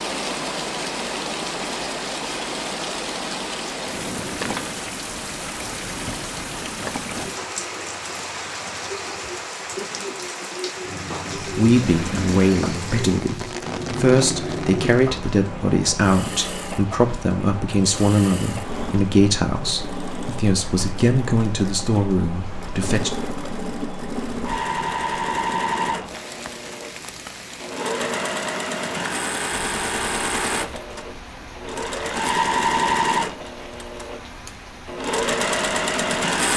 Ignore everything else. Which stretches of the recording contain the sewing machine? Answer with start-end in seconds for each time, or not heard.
10.8-36.5.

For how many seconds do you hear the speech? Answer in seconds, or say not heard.
12 s.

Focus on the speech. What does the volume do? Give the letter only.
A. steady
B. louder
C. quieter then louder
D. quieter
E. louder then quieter
A.